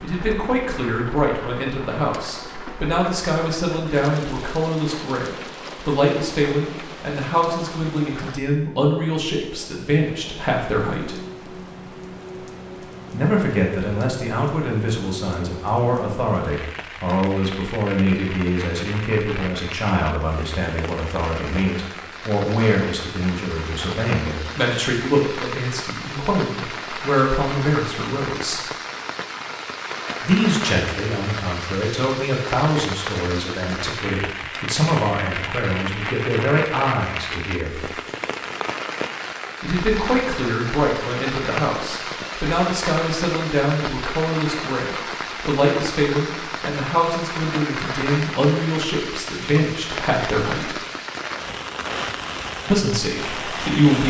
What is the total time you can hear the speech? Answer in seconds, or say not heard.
47 s.